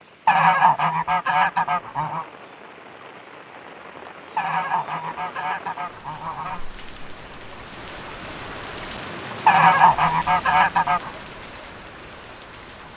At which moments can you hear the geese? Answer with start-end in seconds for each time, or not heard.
0.2-2.2, 4.3-6.7, 9.4-11.1.